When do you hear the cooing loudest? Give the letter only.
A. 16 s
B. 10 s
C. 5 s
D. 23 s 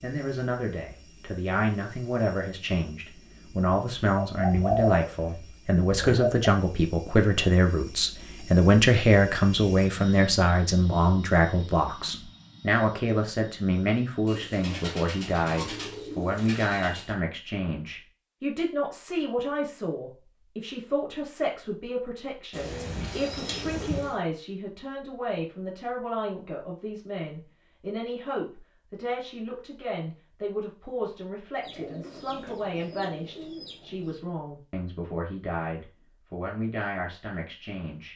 C.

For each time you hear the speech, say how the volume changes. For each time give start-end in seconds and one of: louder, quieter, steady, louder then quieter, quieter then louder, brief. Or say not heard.
0.0-38.1 quieter.